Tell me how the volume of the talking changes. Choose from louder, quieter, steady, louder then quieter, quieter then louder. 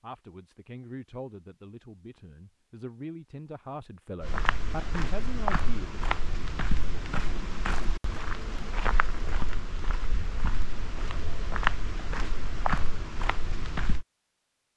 quieter then louder.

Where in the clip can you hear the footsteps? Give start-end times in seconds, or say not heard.
4.2-14.1.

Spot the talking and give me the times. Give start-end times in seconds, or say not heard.
0.0-6.0.